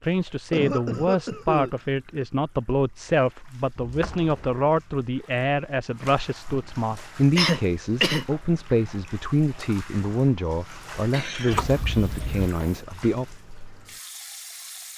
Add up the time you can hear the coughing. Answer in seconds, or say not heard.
3 s.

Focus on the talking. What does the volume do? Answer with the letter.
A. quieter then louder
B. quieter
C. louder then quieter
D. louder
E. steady
E.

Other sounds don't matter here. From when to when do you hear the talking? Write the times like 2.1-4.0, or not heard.
0.0-13.2.